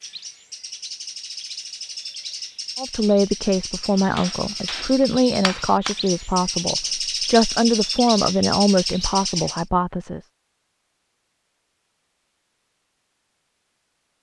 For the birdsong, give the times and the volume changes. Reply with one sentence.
You can hear the birdsong from 0.0 to 9.7 s, getting louder.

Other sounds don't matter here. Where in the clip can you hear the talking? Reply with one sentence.
You can hear the talking from 2.8 to 10.2 s.